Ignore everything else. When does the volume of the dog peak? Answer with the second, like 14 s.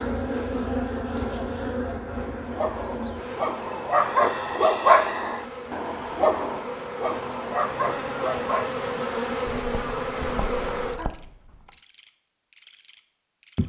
5 s.